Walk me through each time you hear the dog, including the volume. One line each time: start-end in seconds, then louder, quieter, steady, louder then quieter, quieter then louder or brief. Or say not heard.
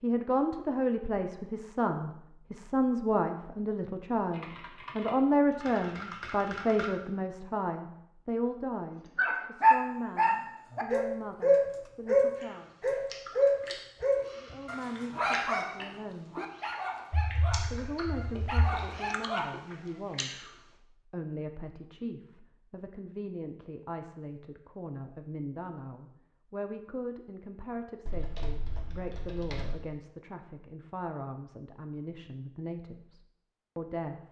9.2-19.6 quieter.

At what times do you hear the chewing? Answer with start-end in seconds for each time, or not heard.
12.3-20.6.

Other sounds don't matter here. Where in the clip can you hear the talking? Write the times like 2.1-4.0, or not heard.
0.0-12.7, 14.3-16.4, 17.7-34.2.